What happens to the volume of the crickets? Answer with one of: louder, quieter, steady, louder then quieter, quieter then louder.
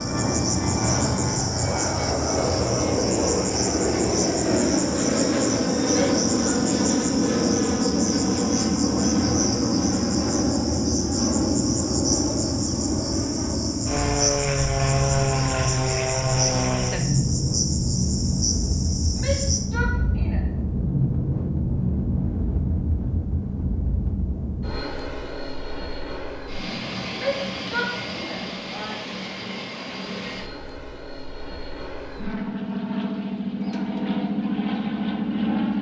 steady.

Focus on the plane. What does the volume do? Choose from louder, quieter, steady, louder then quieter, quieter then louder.
quieter.